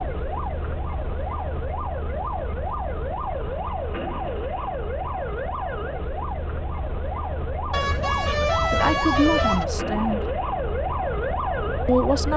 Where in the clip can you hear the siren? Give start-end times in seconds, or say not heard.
0.0-12.3.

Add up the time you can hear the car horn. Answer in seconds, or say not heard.
2 s.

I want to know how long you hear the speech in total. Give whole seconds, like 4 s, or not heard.
2 s.